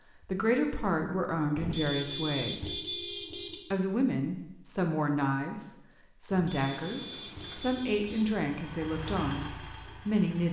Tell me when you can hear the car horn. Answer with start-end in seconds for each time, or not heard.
1.6-3.6, 6.3-8.3.